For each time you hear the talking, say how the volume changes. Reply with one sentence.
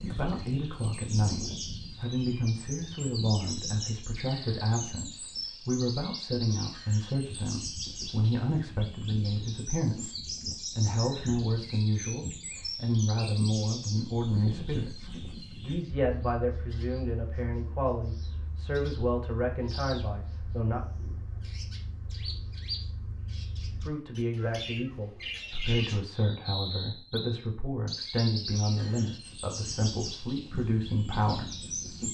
You can hear the talking from 0.1 to 20.8 s, at a steady volume; and from 23.8 to 32.0 s, at a steady volume.